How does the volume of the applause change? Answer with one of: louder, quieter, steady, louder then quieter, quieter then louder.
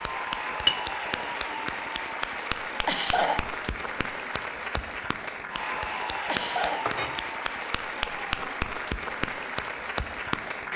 steady.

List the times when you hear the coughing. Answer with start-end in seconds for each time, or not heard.
2.9-3.4, 6.2-6.8.